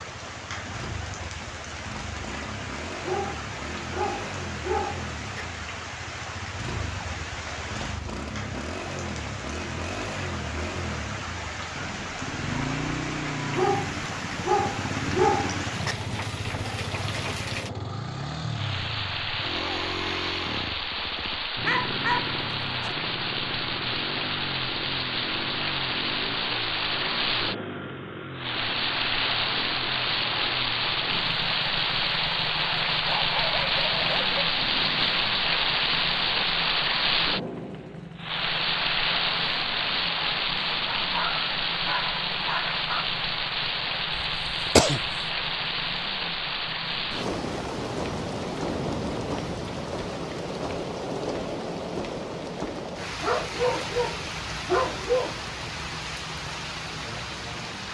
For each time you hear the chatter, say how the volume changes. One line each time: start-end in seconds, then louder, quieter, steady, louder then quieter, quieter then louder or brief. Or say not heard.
not heard.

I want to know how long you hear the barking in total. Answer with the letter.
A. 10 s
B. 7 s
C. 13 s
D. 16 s
C.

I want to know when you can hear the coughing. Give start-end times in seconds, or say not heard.
44.1-45.0.